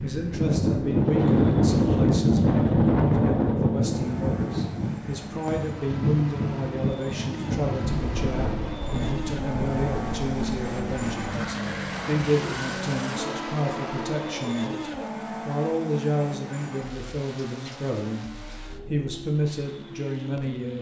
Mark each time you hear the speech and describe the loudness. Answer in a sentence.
You can hear the speech from 0.0 to 20.7 s, at a steady volume.